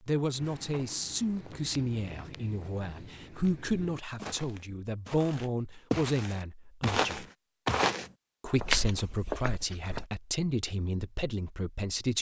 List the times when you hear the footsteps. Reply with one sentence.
You can hear the footsteps from 0.3 to 10.1 s.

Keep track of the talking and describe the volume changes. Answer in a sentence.
The loudness of the talking stays about the same.